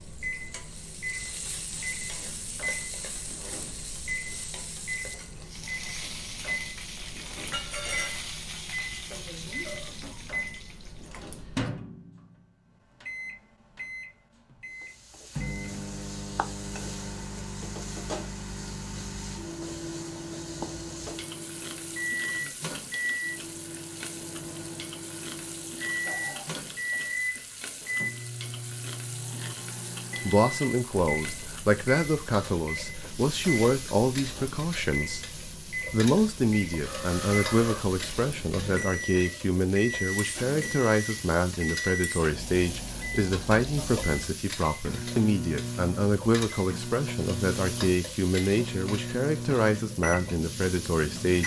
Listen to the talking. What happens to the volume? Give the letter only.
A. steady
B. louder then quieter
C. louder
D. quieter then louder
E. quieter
A.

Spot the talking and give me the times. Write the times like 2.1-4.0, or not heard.
30.2-35.3, 35.9-51.4.